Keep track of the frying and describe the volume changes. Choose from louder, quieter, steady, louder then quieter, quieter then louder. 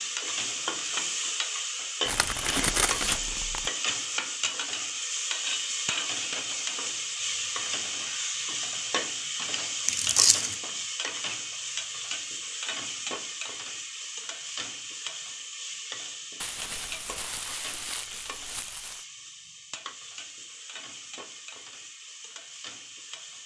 quieter.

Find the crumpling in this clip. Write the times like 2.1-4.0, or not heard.
2.0-3.7, 9.8-10.6, 16.4-19.1.